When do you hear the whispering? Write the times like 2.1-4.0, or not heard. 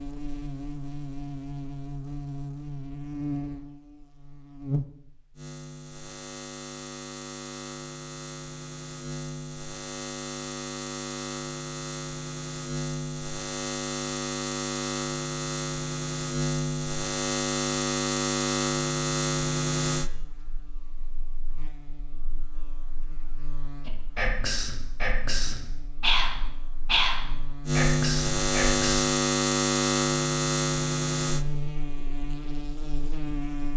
23.9-29.1.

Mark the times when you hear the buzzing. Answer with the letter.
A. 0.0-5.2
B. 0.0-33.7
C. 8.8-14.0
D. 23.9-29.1
B.